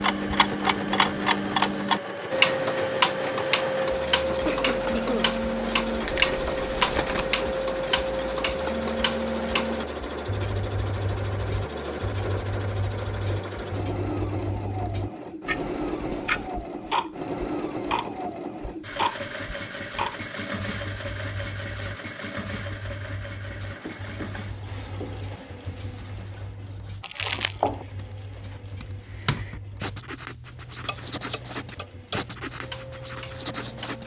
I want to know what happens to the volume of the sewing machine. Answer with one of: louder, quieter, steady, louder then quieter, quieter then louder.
quieter.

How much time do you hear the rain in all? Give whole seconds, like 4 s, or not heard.
not heard.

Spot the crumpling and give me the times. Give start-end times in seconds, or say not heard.
6.0-7.2, 27.0-27.7.